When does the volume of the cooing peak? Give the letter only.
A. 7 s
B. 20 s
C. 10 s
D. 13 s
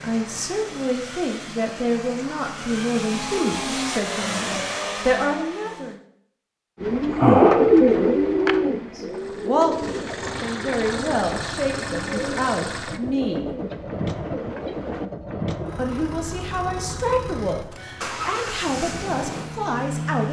A.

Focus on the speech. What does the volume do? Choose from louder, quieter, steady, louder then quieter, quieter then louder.
steady.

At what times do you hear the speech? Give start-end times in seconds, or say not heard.
0.0-6.0, 8.9-13.4, 15.8-20.2.